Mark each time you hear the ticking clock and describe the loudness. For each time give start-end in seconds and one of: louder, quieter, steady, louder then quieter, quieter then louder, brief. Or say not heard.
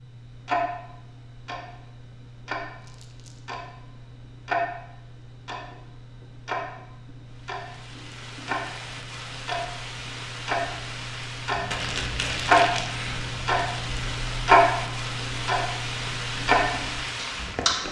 0.0-17.8 louder.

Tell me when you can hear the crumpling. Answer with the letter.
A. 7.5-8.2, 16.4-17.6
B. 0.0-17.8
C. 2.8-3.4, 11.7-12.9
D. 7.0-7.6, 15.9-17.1
C.